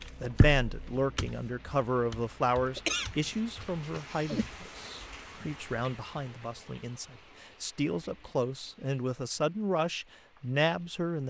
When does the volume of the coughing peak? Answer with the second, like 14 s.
3 s.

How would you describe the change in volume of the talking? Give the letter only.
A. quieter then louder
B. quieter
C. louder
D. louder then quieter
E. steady
A.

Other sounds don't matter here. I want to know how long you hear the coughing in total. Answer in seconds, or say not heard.
2 s.